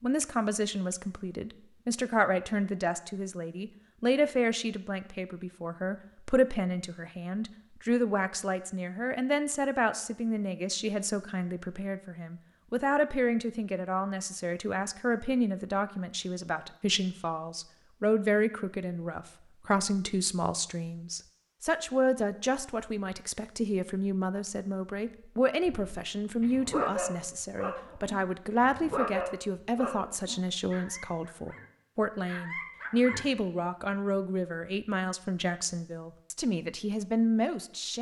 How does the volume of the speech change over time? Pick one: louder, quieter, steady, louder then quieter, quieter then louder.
steady.